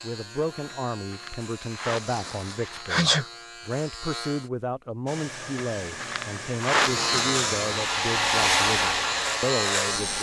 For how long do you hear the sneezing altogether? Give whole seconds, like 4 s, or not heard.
4 s.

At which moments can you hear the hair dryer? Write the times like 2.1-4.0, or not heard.
5.0-10.1.